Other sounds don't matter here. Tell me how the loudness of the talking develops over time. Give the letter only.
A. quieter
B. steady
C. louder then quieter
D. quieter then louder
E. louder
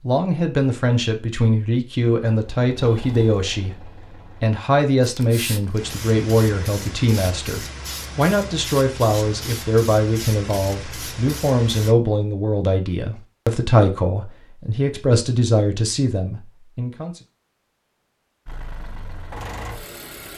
B.